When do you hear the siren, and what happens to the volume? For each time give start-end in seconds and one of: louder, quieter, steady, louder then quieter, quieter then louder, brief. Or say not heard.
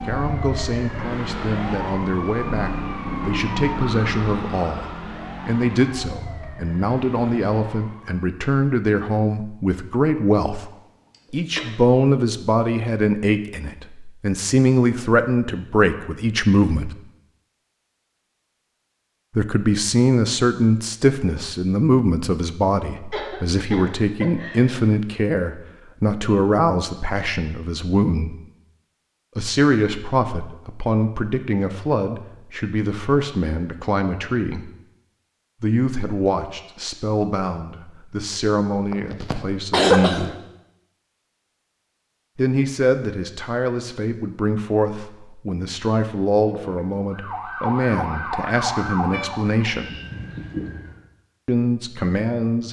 0.0-8.2 quieter
46.4-51.0 louder then quieter.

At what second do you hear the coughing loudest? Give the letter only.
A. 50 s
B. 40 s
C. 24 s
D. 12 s
B.